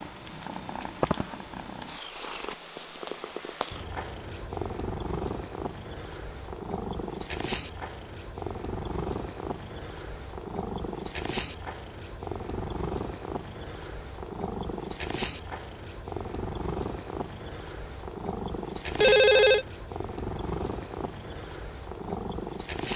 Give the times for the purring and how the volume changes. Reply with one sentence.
You can hear the purring from 0.0 to 22.9 s, at a steady volume.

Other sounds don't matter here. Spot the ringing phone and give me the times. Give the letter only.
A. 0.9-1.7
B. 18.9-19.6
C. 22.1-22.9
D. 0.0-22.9
B.